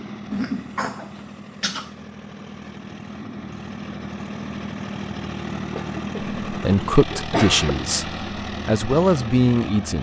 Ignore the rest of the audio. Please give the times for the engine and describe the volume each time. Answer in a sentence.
The engine can be heard from 0.0 to 9.9 s, getting louder.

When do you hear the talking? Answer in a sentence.
The talking can be heard from 6.5 to 9.9 s.